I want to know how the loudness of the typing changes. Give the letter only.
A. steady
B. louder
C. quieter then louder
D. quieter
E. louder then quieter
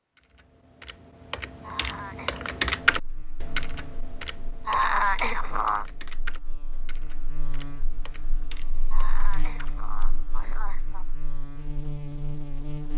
E.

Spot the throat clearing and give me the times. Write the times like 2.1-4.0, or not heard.
1.6-2.5, 4.7-5.8, 8.9-11.1.